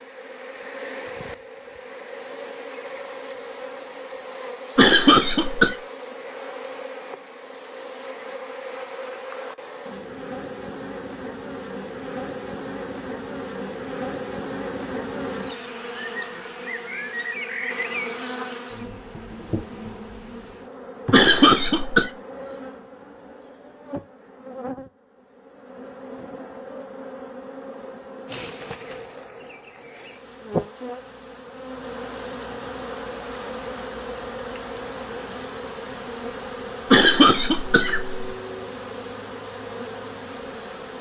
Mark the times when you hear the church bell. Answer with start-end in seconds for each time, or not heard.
not heard.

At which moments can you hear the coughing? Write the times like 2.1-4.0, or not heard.
4.8-5.8, 21.1-22.1, 36.9-38.2.